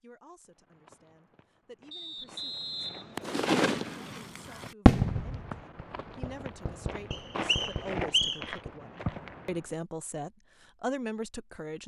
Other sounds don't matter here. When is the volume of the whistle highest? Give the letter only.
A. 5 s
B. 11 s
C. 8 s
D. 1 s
C.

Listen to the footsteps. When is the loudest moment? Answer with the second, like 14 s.
8 s.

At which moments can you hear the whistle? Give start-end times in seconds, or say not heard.
1.9-3.9, 7.1-8.6.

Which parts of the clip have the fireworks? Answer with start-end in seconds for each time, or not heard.
3.1-9.4.